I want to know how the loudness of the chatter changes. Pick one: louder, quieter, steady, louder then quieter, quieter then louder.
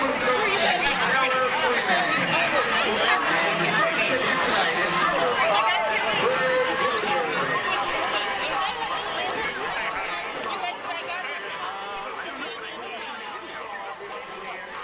quieter.